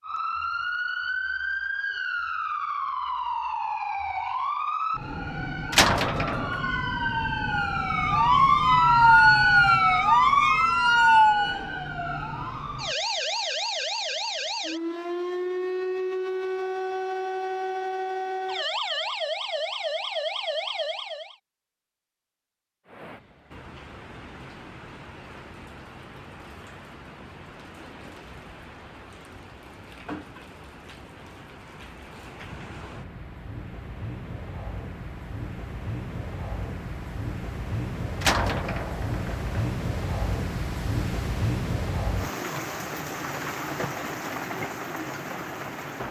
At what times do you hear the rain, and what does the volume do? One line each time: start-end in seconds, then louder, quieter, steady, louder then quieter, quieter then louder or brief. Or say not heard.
22.9-46.0 louder.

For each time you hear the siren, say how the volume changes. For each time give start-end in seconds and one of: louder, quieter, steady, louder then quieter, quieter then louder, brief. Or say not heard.
0.0-21.4 louder then quieter.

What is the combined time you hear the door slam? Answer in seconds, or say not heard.
2 s.